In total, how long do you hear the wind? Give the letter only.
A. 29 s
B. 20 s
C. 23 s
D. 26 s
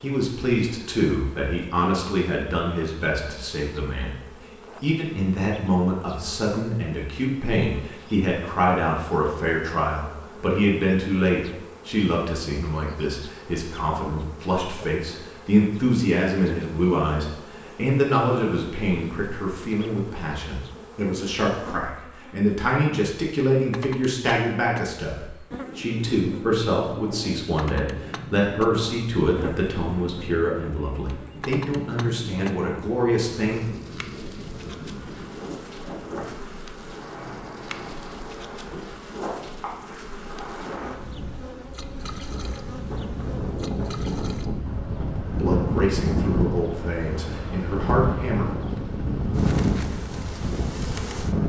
D.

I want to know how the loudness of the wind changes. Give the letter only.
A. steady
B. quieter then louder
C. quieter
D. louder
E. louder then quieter
D.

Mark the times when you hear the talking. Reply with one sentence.
The talking can be heard from 0.0 to 4.2 s, from 4.8 to 33.6 s and from 45.4 to 48.5 s.